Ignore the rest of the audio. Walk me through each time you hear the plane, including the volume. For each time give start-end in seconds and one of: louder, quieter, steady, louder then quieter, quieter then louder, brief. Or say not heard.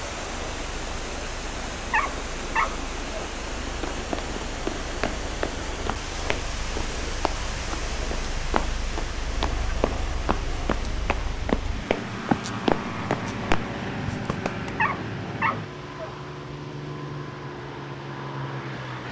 0.0-19.0 louder.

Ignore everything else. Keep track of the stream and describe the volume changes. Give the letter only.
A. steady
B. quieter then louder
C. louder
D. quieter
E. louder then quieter
D.